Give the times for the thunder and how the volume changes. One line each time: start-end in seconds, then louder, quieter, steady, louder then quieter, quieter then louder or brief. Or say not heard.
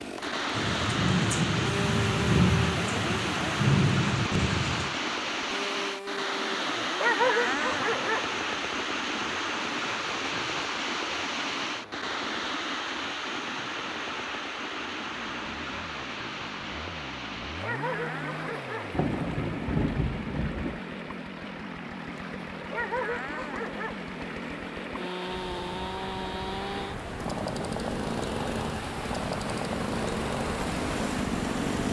0.6-5.0 steady
18.9-20.8 brief.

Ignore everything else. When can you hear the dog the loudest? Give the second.
7 s.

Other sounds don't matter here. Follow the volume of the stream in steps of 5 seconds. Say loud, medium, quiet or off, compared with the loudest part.
loud, loud, loud, medium, medium, medium, loud.